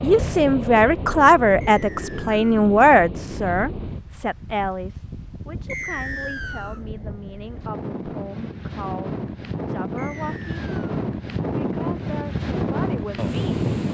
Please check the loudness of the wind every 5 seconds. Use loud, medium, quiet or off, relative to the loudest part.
medium, medium, loud.